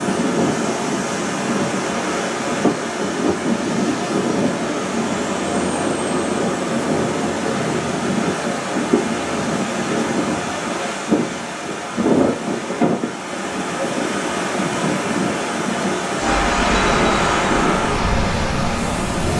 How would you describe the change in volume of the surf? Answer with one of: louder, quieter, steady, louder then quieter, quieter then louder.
steady.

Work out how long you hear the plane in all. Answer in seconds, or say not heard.
3 s.